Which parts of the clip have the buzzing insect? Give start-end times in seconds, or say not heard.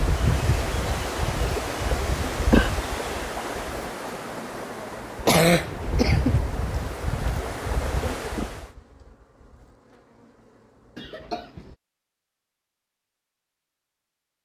0.0-11.8.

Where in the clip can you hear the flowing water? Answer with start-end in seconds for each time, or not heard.
0.0-8.8.